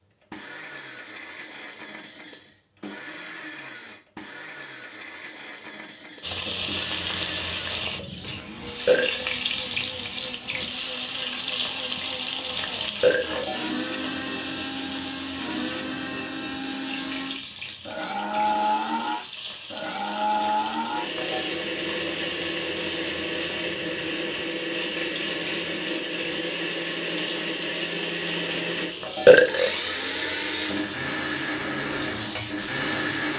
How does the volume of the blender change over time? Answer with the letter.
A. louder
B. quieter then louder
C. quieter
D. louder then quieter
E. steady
A.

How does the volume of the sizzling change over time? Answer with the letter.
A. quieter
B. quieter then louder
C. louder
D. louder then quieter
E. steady
A.